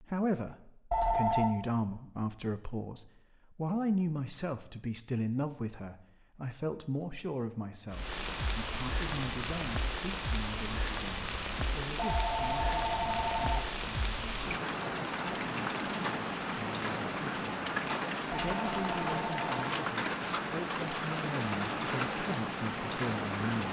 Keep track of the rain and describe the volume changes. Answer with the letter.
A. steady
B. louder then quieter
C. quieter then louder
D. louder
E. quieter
A.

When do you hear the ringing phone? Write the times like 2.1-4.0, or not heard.
0.9-1.6, 11.9-13.8, 18.3-19.6.